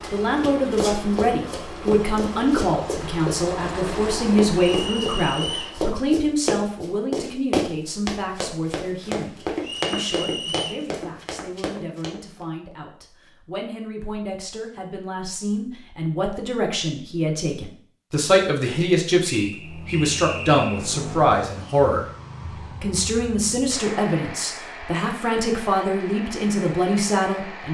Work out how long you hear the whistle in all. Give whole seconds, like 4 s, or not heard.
4 s.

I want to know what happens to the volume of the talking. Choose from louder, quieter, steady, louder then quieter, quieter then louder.
quieter then louder.